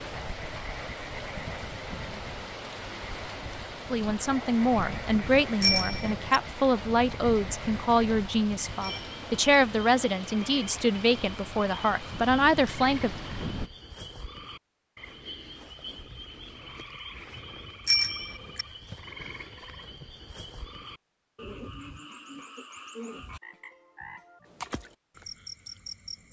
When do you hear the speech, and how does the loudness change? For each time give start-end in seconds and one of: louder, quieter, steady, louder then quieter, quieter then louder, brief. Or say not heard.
3.9-13.1 steady.